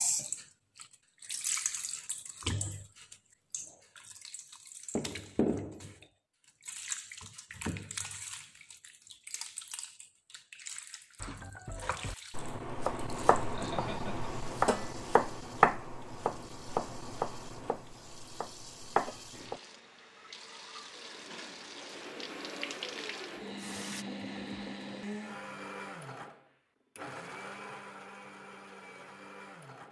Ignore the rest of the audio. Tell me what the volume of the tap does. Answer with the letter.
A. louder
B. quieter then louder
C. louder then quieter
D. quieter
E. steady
B.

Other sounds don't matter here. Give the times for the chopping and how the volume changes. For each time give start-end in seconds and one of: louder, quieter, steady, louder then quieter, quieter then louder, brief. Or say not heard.
11.2-19.6 louder then quieter.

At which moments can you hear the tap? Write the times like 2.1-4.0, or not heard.
0.0-24.1.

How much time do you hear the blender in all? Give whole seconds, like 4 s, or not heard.
9 s.